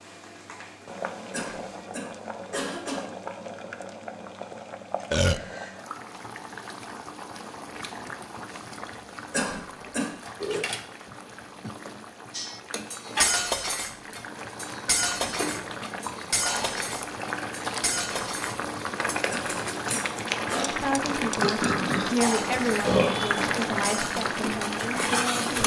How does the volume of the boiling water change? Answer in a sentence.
The loudness of the boiling water goes up.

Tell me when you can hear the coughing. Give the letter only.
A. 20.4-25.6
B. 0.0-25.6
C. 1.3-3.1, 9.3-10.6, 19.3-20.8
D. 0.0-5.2
C.